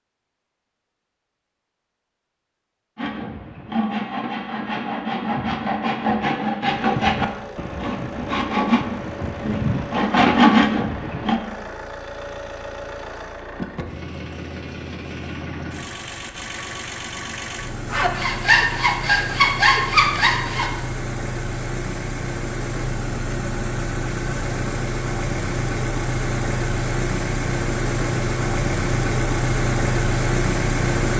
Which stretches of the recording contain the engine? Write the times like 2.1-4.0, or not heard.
6.7-31.1.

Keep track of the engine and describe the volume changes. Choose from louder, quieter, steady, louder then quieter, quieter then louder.
louder.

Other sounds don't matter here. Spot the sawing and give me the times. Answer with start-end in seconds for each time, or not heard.
3.0-11.4, 17.9-20.9.